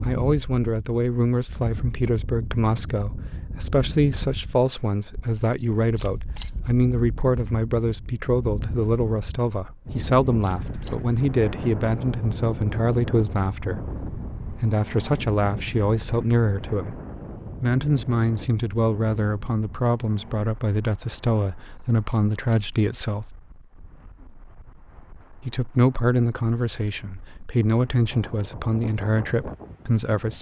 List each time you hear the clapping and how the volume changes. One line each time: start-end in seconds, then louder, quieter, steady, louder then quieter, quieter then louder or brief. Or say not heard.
not heard.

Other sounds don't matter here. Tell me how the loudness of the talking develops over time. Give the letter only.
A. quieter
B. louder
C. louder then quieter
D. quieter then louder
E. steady
E.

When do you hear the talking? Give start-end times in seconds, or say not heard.
0.0-16.9, 17.6-23.2, 25.4-30.3.